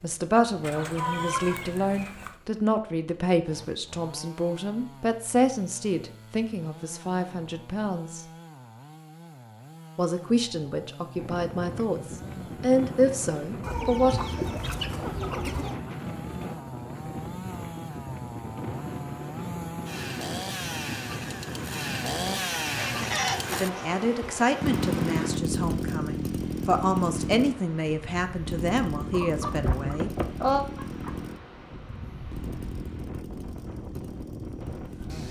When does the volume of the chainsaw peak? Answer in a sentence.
The volume of the chainsaw peaks at 25 seconds.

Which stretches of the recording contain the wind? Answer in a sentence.
You can hear the wind from 11.2 to 35.2 s.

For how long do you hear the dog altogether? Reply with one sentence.
The dog can't be heard in this clip.